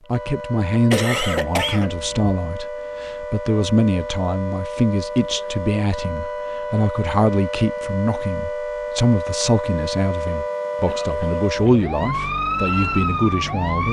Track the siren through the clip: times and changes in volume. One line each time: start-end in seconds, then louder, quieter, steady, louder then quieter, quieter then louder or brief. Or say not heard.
0.0-13.8 louder.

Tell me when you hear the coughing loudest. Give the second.
1 s.